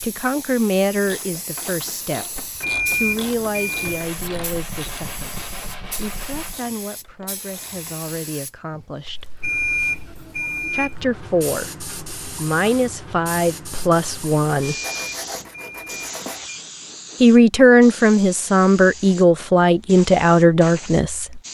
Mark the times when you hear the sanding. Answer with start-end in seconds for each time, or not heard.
3.8-6.5, 14.8-16.4.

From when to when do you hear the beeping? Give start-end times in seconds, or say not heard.
2.6-4.0, 9.4-10.9, 14.7-16.6.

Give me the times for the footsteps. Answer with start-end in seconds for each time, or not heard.
not heard.